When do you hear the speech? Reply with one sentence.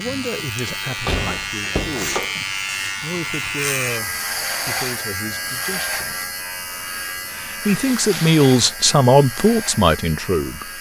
The speech can be heard from 0.0 to 6.3 s and from 7.2 to 10.7 s.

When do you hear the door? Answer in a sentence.
The door can be heard from 0.7 to 2.3 s and from 7.7 to 8.4 s.